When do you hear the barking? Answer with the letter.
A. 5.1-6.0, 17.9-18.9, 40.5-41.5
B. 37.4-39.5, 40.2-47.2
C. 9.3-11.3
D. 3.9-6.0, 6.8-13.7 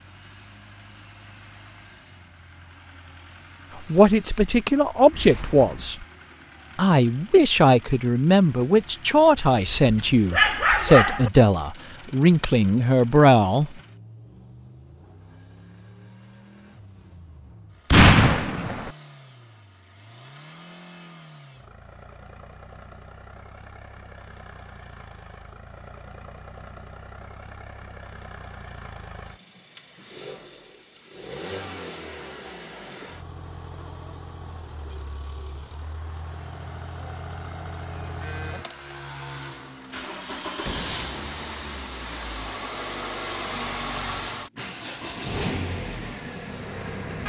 C.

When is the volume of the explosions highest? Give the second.
18 s.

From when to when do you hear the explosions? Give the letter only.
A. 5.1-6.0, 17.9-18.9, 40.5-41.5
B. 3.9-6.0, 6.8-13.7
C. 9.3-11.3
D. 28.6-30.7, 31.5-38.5
A.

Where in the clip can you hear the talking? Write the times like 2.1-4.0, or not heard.
3.9-6.0, 6.8-13.7.